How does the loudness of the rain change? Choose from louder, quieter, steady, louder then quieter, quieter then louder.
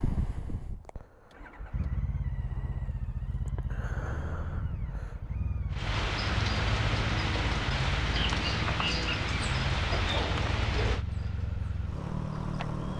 quieter.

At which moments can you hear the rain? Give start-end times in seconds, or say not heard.
5.7-12.9.